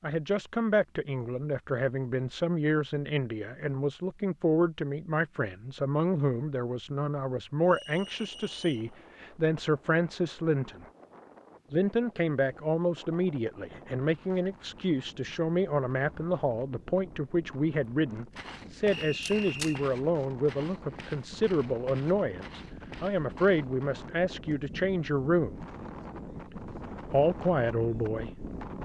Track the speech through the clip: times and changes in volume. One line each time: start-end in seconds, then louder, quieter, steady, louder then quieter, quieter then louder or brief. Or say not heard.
0.0-10.8 steady
11.7-25.6 steady
26.5-28.8 brief.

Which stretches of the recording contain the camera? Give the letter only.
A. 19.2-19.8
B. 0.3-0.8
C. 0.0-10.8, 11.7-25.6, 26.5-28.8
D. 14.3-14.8
A.